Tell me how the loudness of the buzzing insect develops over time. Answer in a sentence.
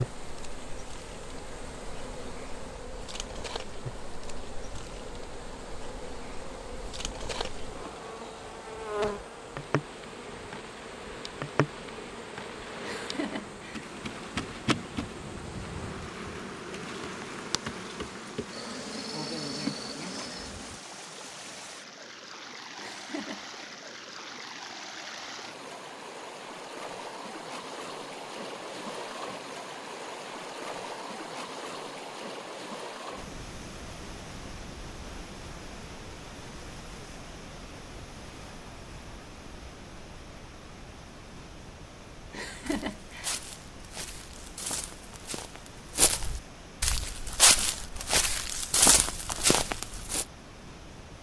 The volume of the buzzing insect goes up.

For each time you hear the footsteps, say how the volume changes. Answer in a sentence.
The footsteps can be heard from 42.6 to 50.2 s, getting louder.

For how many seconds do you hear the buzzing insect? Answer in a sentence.
You can hear the buzzing insect for 21 seconds altogether.